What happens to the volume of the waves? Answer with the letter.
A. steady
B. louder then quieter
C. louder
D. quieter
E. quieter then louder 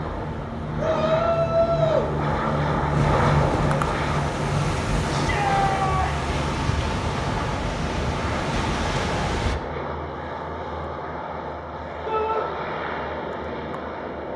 C.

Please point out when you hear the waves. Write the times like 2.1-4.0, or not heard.
0.0-9.6.